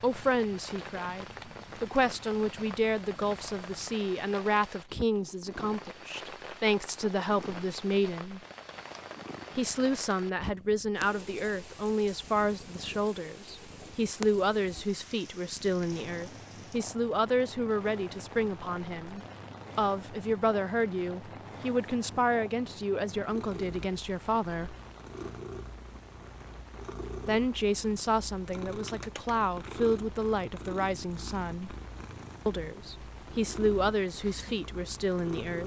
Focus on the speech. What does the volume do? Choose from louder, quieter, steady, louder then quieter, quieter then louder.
steady.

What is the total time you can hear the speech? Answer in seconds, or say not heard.
31 s.